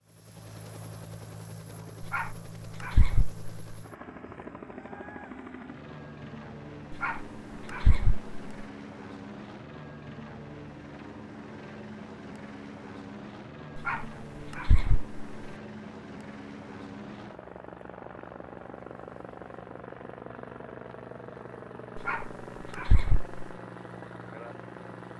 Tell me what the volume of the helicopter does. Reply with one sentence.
The loudness of the helicopter stays about the same.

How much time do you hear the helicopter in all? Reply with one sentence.
You can hear the helicopter for 25 seconds altogether.